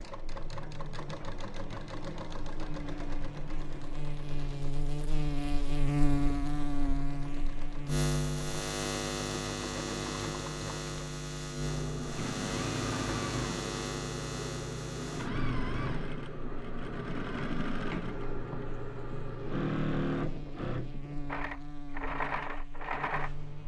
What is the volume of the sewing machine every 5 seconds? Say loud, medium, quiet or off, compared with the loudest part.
medium, medium, loud, loud, loud.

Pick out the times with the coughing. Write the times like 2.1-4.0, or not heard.
not heard.